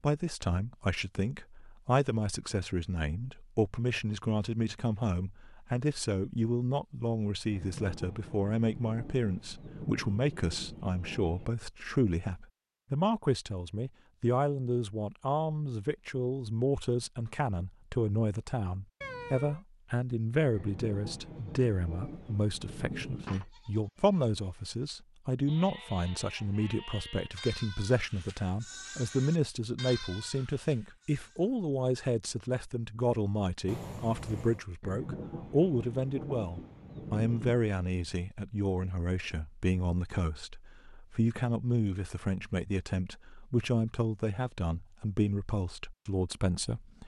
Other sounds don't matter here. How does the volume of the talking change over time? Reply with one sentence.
The volume of the talking stays about the same.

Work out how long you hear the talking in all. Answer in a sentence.
The talking can be heard for 47 seconds in total.